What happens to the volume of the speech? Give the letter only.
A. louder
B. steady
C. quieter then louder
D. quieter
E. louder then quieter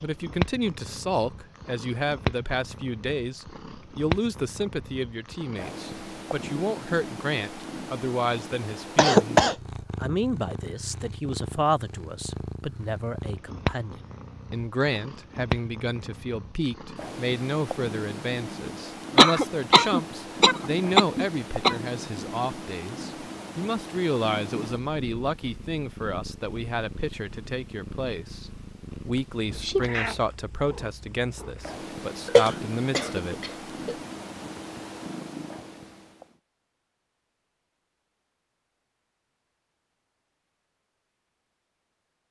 B.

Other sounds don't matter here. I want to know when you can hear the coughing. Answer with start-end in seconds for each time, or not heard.
8.9-9.6, 19.1-21.8, 32.2-34.0.